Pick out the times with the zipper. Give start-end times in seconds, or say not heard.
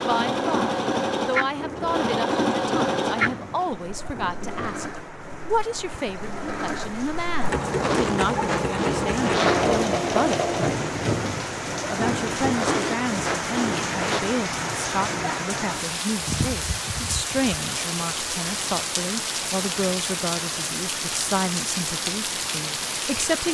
7.8-9.8, 12.6-14.2.